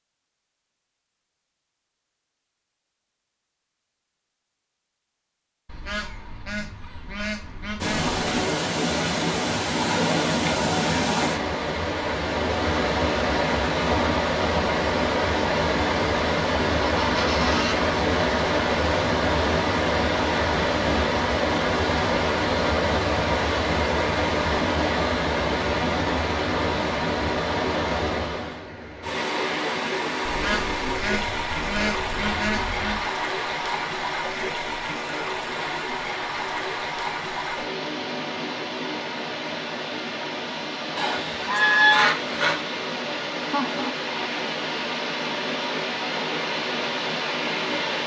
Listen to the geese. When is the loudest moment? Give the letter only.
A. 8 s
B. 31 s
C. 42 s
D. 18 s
C.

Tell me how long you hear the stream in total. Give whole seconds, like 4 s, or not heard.
40 s.